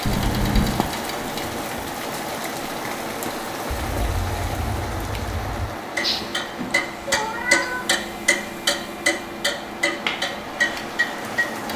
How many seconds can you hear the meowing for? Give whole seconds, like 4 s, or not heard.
3 s.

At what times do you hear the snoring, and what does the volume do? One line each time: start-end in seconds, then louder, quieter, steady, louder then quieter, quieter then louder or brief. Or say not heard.
not heard.